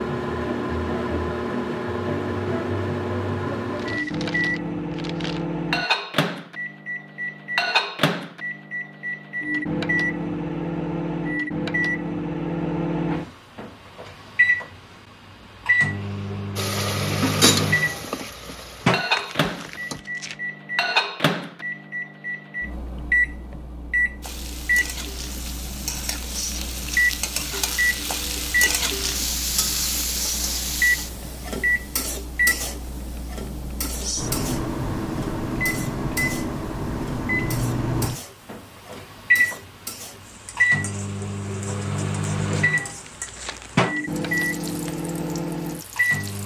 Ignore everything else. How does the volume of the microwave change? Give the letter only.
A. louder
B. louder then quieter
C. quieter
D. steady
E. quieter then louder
D.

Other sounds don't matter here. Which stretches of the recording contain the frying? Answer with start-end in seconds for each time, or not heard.
16.6-20.0, 24.2-46.4.